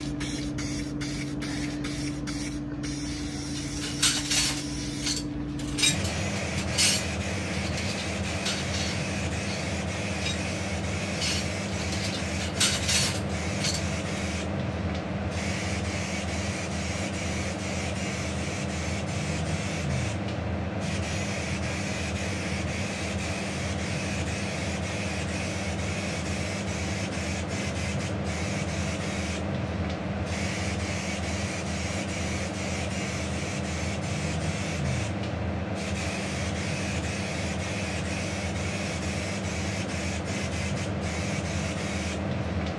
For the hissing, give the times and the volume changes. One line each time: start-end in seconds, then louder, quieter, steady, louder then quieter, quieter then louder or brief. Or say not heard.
0.0-42.7 steady.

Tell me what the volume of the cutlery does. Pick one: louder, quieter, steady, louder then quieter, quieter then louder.
quieter then louder.